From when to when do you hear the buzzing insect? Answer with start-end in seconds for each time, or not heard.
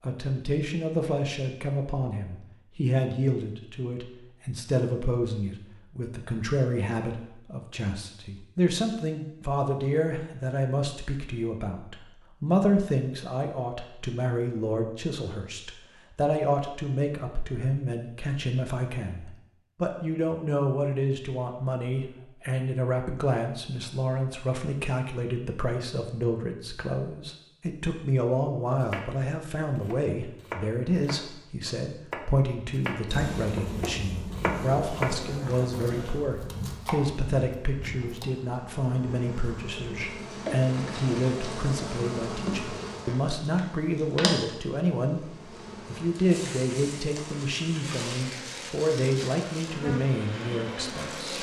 33.0-51.3.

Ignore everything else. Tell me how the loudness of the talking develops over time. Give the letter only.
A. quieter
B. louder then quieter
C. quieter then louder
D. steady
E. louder
D.